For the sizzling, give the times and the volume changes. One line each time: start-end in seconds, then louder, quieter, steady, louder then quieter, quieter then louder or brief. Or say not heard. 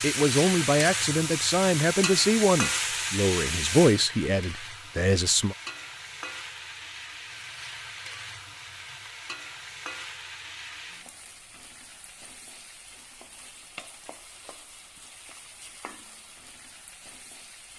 0.0-17.7 quieter.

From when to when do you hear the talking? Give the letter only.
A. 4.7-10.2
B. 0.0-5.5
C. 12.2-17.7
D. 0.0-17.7
B.